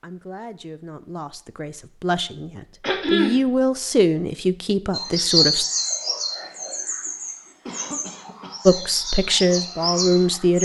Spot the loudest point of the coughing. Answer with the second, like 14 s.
3 s.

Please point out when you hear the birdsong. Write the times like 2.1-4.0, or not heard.
4.9-10.6.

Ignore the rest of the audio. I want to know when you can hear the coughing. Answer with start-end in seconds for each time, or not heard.
2.8-3.4, 7.7-8.6.